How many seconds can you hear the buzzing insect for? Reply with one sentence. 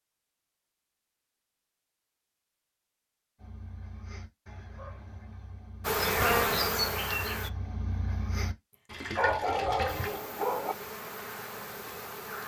The buzzing insect can be heard for 4 seconds in total.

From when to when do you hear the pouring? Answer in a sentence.
You can hear the pouring from 8.8 to 10.2 s.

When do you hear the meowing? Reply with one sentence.
The meowing can't be heard in this clip.